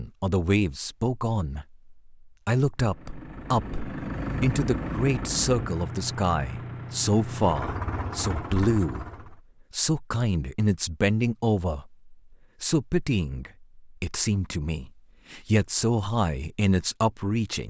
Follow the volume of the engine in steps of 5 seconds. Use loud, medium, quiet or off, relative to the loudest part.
loud, loud, off, off.